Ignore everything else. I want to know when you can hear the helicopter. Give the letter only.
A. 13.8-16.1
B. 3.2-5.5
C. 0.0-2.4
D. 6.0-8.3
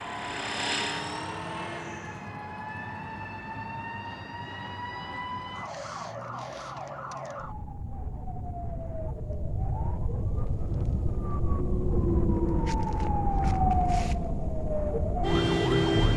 C.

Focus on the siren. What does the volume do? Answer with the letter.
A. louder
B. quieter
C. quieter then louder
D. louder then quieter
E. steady
A.